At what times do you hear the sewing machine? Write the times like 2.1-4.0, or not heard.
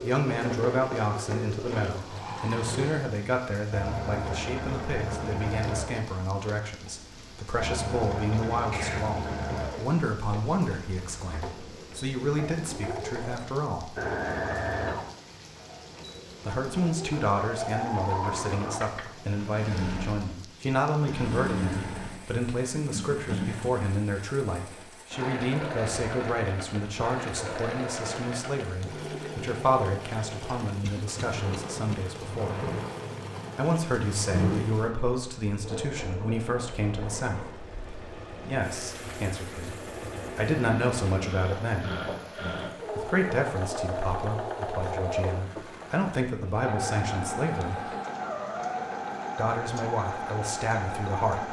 0.0-51.4.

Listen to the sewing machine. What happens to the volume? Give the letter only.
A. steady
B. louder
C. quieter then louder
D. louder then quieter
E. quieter
A.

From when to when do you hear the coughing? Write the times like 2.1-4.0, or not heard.
8.5-9.2, 30.8-31.9.